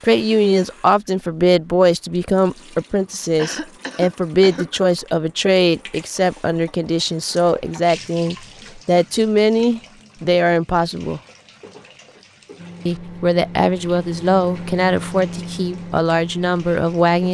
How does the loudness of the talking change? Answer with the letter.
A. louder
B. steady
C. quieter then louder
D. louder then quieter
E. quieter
B.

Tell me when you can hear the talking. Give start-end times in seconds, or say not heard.
0.0-11.2, 12.8-17.2.